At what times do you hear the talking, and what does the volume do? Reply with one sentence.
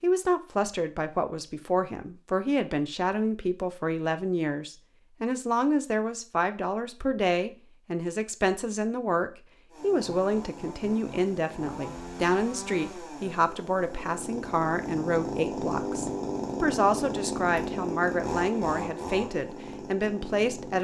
The talking can be heard from 0.0 to 20.7 s, at a steady volume.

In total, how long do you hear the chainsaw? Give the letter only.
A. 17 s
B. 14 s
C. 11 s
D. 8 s
C.